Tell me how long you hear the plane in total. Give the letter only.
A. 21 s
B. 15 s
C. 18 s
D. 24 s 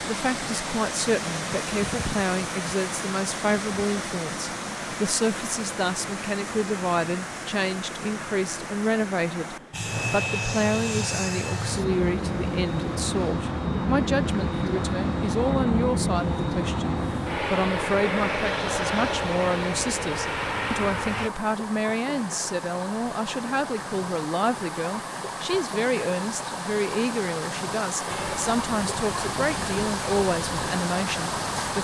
B.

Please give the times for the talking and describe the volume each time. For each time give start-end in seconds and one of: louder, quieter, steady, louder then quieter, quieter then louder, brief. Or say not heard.
0.1-31.7 steady.